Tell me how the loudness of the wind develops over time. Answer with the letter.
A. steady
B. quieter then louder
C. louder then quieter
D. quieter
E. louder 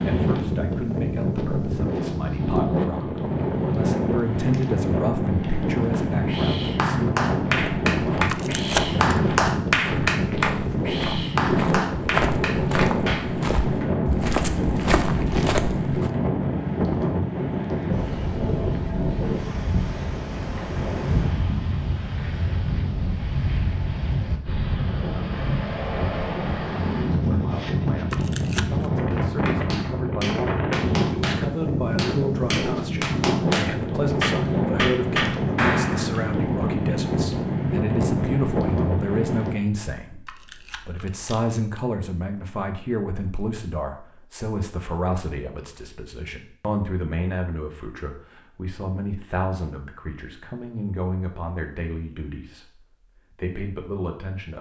A.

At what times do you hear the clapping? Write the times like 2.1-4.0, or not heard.
5.8-13.8, 29.1-36.1.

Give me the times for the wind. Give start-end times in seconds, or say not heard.
0.0-39.5.